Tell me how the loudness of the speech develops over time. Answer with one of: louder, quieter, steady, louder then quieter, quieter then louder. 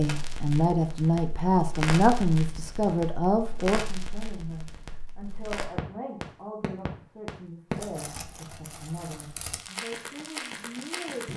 quieter.